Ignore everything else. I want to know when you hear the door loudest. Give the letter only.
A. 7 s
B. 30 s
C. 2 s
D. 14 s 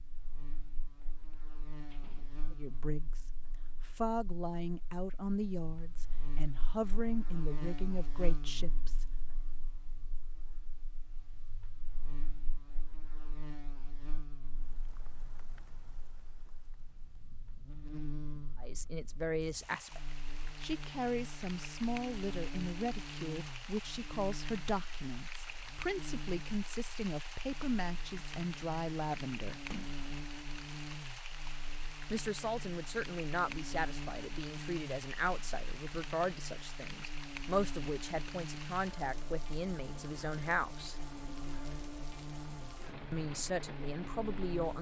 B.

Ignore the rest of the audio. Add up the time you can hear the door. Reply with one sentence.
You can hear the door for 2 seconds altogether.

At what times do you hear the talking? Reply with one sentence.
You can hear the talking from 2.5 to 3.2 s, from 3.9 to 9.1 s, from 18.6 to 29.6 s, from 32.1 to 41.0 s and from 43.1 to 44.7 s.